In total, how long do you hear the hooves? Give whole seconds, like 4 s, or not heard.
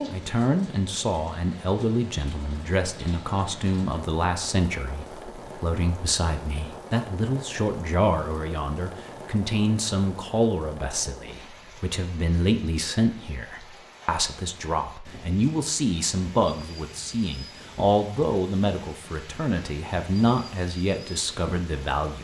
not heard.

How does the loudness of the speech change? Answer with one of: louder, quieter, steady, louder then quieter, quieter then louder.
steady.